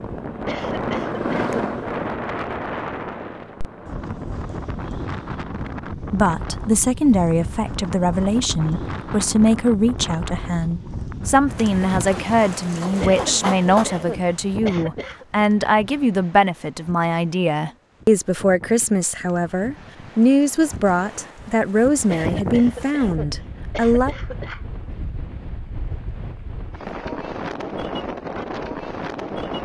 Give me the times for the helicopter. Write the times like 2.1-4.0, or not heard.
0.0-4.8.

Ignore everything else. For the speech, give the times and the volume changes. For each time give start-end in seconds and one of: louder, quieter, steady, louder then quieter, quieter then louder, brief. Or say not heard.
6.0-24.1 steady.